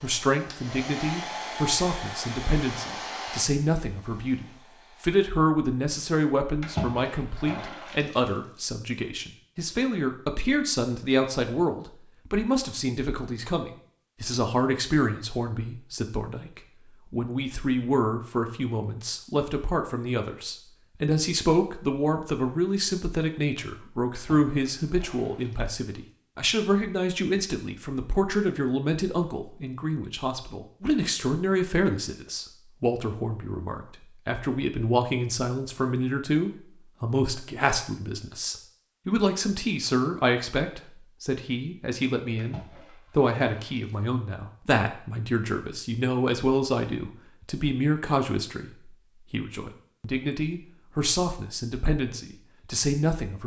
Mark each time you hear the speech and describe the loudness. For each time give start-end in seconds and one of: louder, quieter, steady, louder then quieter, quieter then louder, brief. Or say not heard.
0.0-53.4 steady.